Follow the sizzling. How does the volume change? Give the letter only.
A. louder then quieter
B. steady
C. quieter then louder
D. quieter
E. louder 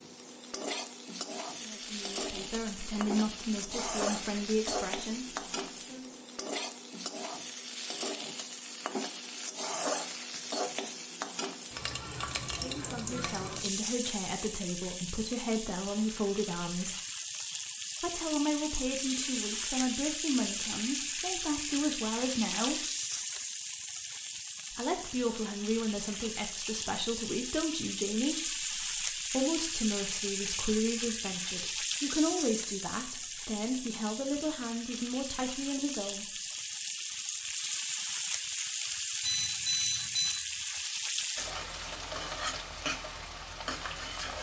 B.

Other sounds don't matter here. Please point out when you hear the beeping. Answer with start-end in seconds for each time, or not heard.
39.2-40.4.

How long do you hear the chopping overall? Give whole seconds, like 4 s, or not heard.
not heard.